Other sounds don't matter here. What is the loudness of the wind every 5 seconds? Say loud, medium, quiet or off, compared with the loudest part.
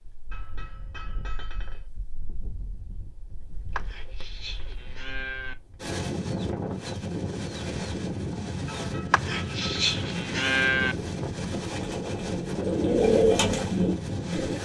quiet, loud, loud.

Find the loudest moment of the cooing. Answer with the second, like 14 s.
13 s.